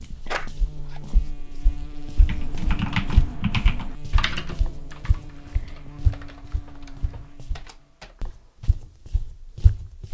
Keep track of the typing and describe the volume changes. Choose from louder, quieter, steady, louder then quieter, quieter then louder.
quieter.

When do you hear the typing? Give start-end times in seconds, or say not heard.
2.2-8.8.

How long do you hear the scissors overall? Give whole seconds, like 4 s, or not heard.
3 s.